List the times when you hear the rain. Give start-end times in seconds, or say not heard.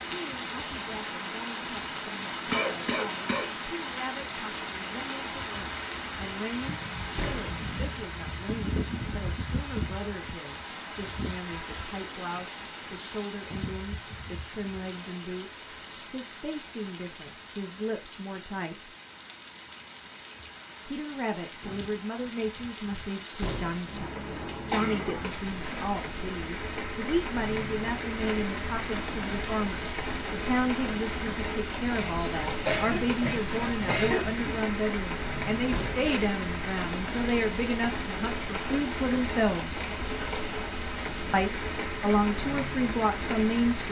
0.0-43.8.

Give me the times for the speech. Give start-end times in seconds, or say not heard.
0.1-18.9, 20.9-39.9, 41.3-43.8.